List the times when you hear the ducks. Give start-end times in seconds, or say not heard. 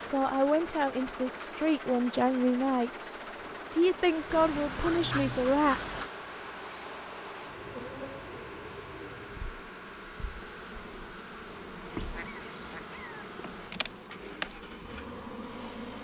4.3-6.1, 11.8-14.2.